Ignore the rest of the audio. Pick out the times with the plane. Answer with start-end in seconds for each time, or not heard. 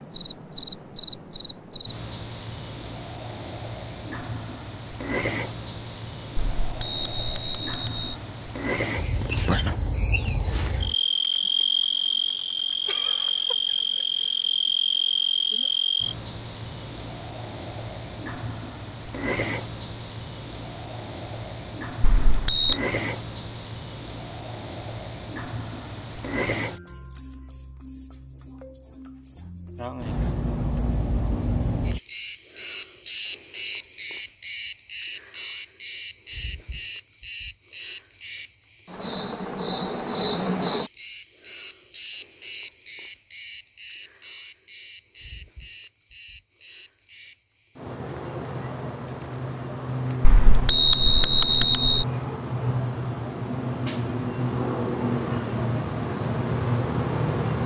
not heard.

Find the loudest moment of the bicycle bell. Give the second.
51 s.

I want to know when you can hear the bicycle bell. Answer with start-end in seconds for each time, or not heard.
6.3-8.1, 22.0-22.8, 50.2-52.0.